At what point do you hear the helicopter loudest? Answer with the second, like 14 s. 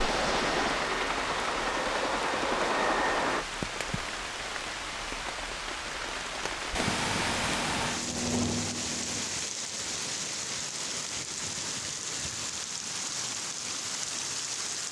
3 s.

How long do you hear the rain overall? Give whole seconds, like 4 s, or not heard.
15 s.